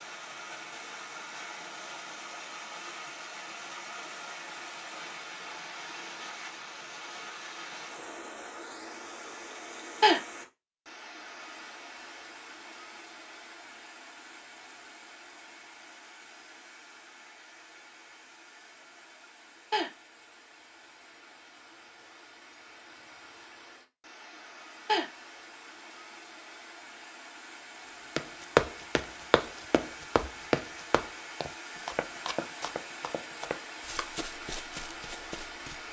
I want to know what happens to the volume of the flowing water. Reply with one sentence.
The volume of the flowing water goes down, then up.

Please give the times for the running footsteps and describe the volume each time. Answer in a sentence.
The running footsteps can be heard from 28.1 to 35.8 s, getting quieter.